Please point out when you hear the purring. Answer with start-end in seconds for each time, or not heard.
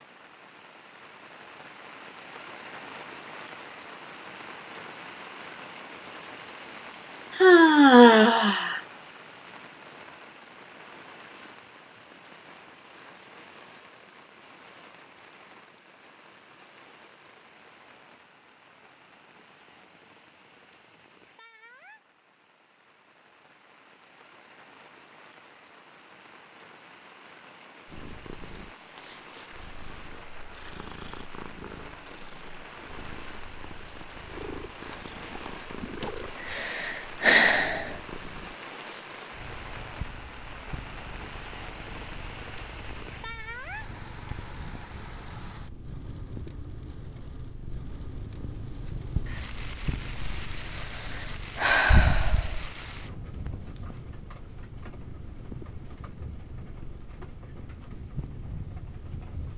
27.9-59.5.